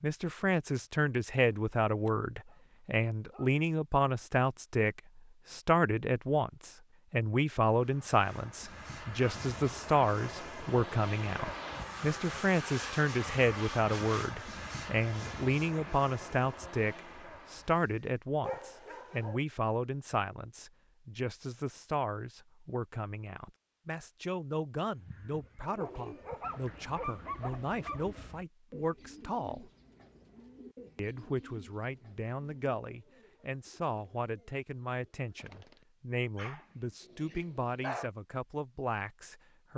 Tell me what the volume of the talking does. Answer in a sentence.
The volume of the talking goes down.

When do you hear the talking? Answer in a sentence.
The talking can be heard from 0.0 to 29.7 s and from 30.9 to 39.7 s.